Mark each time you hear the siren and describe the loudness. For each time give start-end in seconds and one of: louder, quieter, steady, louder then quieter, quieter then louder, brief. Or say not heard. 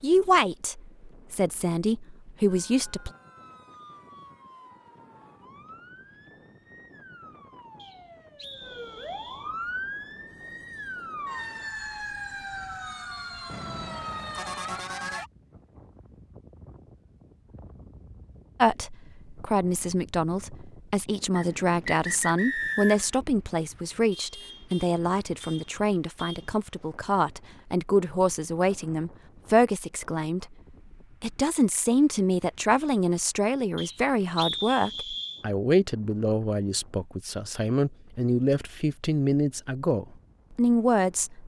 2.5-15.3 louder.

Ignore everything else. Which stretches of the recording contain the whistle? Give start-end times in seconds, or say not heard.
7.8-9.5, 21.4-23.1, 33.8-35.5.